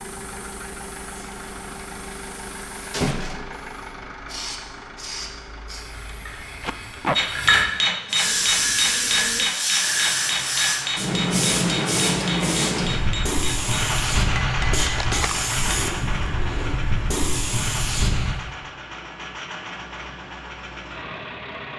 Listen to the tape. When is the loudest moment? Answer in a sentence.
The loudest moment of the tape is at 7 seconds.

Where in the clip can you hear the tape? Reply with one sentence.
The tape can be heard from 6.6 to 7.2 s and from 14.9 to 15.3 s.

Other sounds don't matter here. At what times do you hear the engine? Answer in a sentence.
You can hear the engine from 0.0 to 21.7 s.